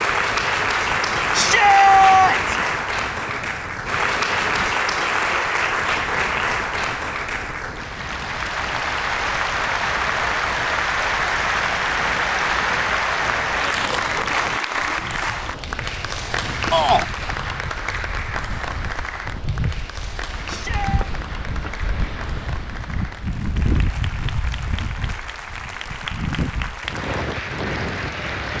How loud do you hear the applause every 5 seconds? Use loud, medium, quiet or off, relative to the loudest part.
loud, loud, loud, medium, quiet, medium.